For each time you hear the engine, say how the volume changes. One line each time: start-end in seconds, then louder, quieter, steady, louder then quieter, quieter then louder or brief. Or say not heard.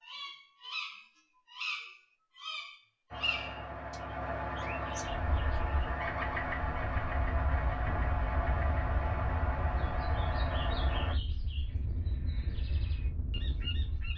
3.1-11.2 steady.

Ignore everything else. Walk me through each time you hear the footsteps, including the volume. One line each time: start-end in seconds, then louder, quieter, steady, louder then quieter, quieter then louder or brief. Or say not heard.
not heard.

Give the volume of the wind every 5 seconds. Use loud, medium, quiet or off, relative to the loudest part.
off, loud, loud.